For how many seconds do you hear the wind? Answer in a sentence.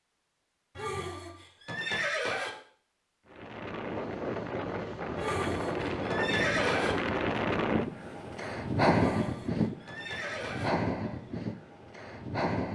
You can hear the wind for 9 seconds altogether.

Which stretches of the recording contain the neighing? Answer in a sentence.
The neighing can be heard from 0.8 to 2.5 s, from 5.2 to 7.0 s and from 8.9 to 10.7 s.